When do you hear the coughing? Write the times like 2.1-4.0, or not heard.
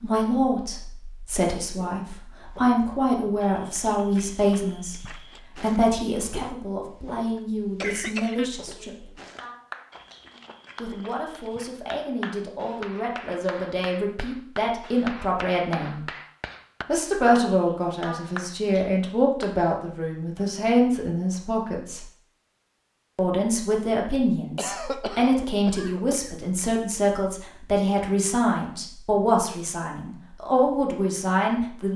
7.3-8.5, 24.6-26.3.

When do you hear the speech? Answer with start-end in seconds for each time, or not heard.
0.0-9.2, 10.8-16.1, 16.9-22.1, 23.1-31.9.